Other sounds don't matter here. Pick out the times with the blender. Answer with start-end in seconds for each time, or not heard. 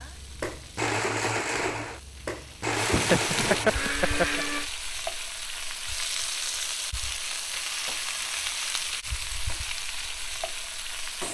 0.0-4.7.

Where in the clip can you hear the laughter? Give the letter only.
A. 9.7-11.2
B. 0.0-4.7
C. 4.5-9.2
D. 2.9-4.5
D.